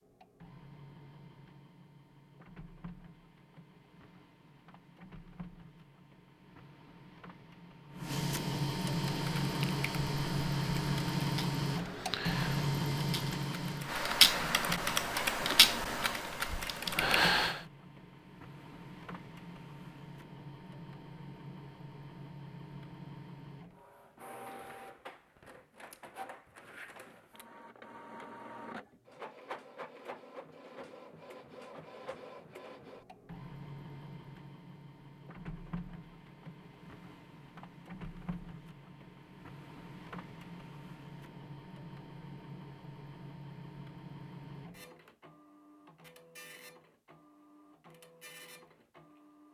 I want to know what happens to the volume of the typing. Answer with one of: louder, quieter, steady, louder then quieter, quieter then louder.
louder then quieter.